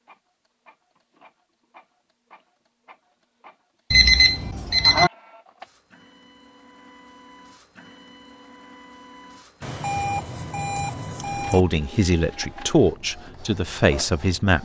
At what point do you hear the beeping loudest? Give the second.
4 s.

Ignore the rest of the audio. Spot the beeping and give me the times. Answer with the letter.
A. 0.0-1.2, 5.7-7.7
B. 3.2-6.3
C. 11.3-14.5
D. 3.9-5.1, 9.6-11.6
D.